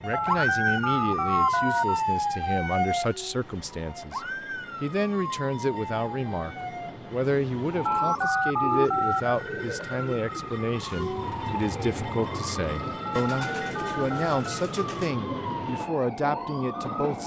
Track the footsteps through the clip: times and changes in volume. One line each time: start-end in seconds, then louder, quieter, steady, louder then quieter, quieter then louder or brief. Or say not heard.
not heard.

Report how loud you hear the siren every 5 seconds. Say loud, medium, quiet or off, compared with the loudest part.
loud, medium, medium, medium.